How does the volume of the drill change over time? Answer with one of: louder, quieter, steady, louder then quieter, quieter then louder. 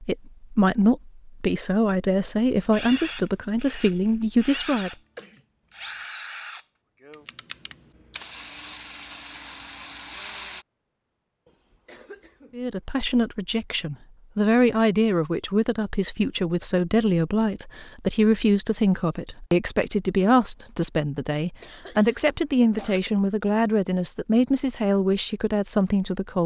louder.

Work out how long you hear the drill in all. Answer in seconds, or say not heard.
8 s.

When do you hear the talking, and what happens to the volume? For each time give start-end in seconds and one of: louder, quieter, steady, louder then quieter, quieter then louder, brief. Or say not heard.
0.0-4.9 steady
12.6-26.4 steady.